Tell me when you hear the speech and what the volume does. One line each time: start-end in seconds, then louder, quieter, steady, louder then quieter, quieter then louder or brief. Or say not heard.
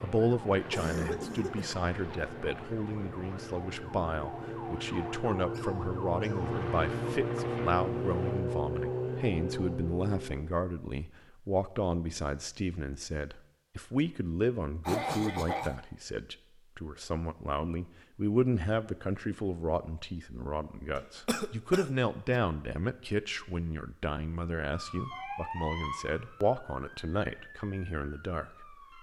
0.0-28.9 steady.